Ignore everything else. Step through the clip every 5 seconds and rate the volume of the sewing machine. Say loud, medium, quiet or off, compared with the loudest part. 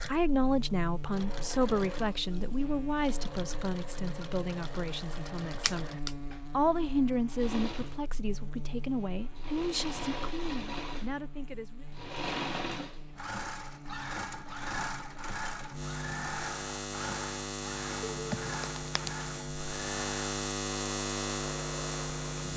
medium, medium, loud, loud, medium.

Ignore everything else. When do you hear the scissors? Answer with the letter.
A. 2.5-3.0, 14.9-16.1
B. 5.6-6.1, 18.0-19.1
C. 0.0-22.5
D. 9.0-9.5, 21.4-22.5
B.